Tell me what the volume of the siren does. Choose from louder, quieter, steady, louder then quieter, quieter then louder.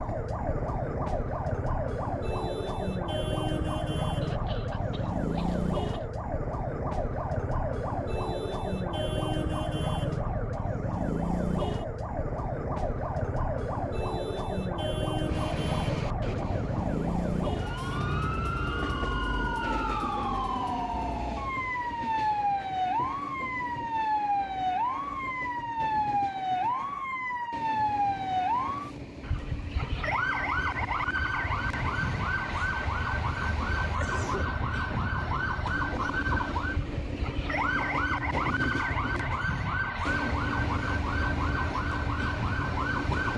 steady.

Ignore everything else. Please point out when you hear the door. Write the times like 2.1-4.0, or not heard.
not heard.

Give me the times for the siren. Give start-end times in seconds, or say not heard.
0.0-43.3.